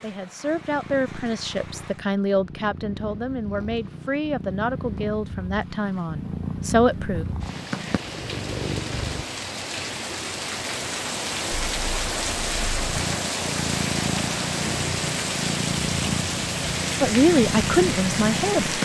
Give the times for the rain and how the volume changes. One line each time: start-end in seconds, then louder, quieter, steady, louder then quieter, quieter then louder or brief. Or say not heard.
0.0-18.7 louder.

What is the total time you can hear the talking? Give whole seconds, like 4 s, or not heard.
9 s.